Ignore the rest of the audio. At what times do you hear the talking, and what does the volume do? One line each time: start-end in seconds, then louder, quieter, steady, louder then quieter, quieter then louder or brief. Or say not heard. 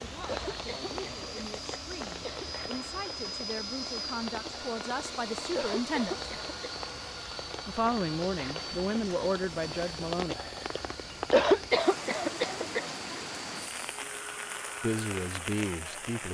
0.0-6.3 louder
7.7-10.3 brief
14.8-16.3 brief.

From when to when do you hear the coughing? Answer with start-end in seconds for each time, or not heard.
0.2-2.5, 5.5-6.5, 11.3-12.8.